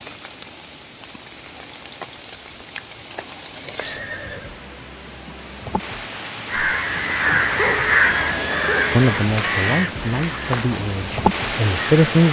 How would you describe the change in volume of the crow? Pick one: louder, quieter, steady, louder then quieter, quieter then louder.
quieter.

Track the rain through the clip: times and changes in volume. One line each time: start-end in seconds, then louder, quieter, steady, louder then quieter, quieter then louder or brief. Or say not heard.
0.0-12.2 louder.